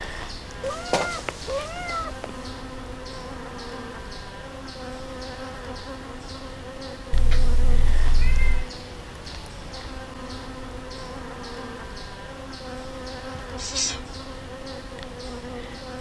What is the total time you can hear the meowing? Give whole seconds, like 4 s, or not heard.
4 s.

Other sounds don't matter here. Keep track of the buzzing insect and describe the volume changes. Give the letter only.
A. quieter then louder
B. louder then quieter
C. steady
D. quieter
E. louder
C.